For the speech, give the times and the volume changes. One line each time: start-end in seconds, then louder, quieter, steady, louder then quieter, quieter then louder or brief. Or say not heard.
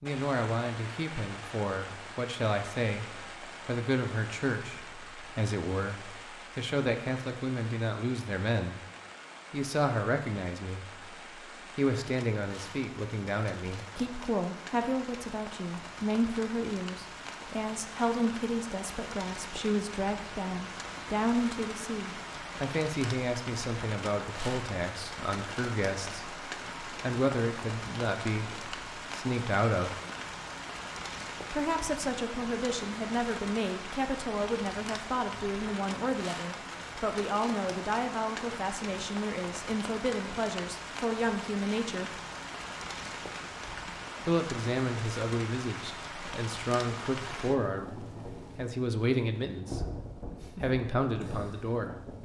0.0-8.8 steady
9.5-11.2 brief
11.8-30.0 steady
31.5-42.1 steady
44.2-52.2 steady.